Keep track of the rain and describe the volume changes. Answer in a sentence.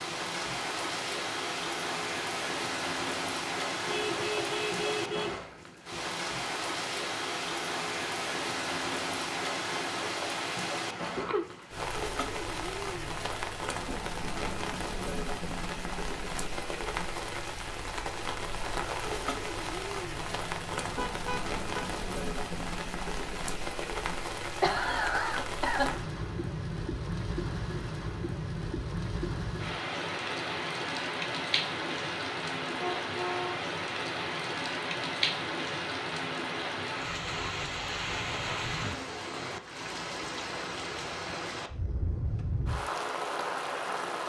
The loudness of the rain stays about the same.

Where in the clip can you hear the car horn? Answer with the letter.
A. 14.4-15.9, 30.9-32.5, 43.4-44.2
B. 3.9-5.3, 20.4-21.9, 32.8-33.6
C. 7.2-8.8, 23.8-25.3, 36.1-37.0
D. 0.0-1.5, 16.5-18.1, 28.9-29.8
B.